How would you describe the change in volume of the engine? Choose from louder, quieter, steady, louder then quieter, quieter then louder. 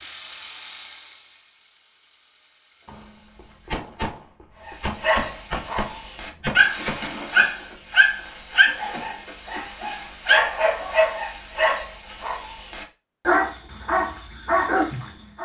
quieter.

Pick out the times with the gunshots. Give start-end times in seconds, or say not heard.
2.9-7.0.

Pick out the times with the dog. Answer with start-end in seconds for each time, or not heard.
4.7-15.4.